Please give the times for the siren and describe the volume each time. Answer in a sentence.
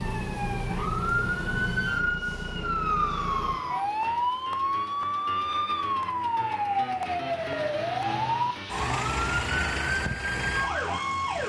The siren can be heard from 0.0 to 11.4 s, at a steady volume.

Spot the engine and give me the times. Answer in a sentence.
The engine can be heard from 0.0 to 3.5 s.